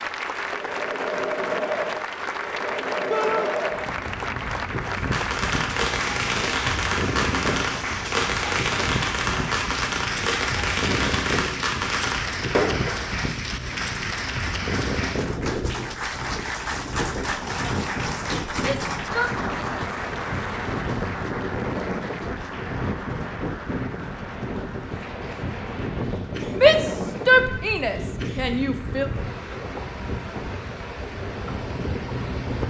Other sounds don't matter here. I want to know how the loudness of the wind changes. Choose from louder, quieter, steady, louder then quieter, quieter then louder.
steady.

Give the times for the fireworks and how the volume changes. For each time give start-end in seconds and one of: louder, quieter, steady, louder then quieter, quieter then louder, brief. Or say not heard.
4.8-13.1 steady.